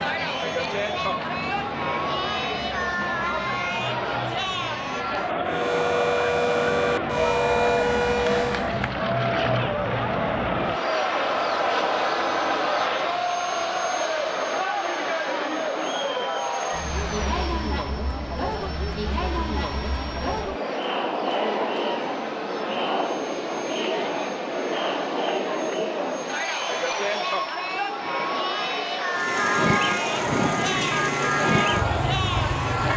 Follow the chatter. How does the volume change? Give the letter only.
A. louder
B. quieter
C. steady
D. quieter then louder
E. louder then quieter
C.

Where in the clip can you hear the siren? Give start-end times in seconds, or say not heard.
5.5-8.7, 29.1-32.9.